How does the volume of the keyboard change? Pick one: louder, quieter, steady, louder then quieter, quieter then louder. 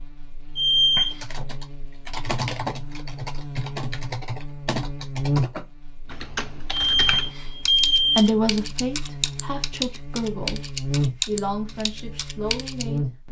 steady.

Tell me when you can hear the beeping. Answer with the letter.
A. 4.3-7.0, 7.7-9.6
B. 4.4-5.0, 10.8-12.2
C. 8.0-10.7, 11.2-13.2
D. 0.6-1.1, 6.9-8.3
D.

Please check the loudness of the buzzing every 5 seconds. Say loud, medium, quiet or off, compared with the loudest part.
medium, loud, loud.